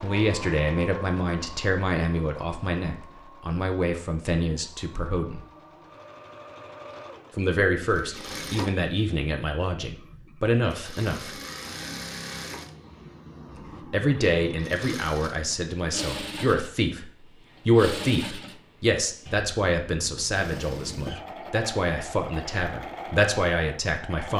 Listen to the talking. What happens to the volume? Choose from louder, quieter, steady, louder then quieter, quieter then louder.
steady.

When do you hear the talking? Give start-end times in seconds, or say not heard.
0.0-5.4, 7.3-11.3, 13.9-24.3.